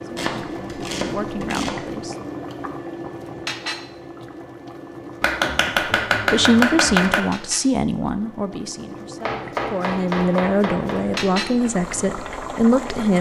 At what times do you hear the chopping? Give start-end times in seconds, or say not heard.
0.1-1.9, 5.2-7.2, 9.2-11.2.